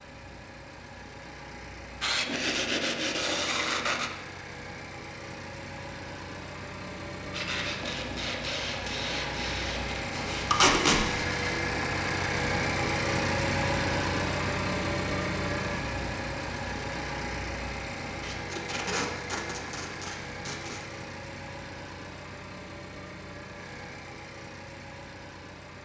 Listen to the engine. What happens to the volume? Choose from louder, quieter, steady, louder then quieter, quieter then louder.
louder then quieter.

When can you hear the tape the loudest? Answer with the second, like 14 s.
11 s.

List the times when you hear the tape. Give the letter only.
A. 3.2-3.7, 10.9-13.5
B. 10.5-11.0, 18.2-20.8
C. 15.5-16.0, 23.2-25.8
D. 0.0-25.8
B.